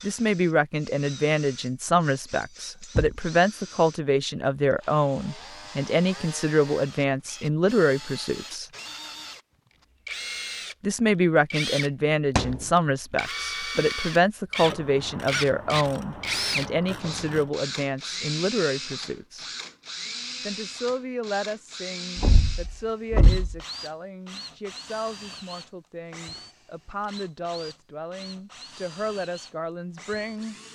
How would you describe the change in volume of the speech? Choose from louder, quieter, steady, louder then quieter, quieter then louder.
quieter.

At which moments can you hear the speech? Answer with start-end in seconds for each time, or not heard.
0.0-8.7, 10.8-19.5, 20.4-30.6.